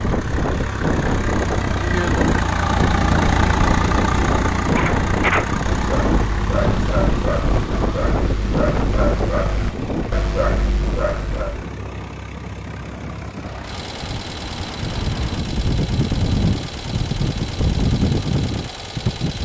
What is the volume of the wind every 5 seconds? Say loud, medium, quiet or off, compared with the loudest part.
loud, loud, medium, loud.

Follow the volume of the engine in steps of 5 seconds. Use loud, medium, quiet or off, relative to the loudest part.
loud, medium, quiet, medium.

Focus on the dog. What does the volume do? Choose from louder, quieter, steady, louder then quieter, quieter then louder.
steady.